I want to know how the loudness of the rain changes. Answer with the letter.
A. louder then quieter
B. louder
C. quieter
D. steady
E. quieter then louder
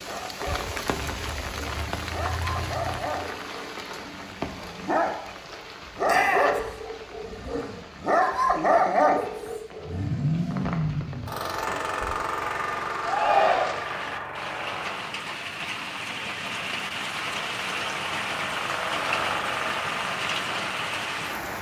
E.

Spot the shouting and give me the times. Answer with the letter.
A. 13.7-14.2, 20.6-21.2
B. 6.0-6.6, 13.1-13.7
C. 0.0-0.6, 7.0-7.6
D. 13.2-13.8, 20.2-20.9
B.